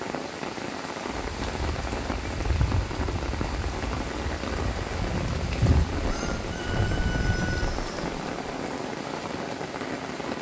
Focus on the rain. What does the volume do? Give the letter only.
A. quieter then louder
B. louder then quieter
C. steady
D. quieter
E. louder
C.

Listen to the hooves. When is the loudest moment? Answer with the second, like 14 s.
6 s.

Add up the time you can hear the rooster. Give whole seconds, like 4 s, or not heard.
2 s.